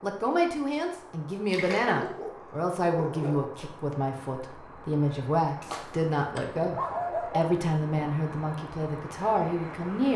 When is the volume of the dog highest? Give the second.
7 s.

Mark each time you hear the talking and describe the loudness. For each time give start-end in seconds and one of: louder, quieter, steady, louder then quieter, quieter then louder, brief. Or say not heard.
0.0-10.1 steady.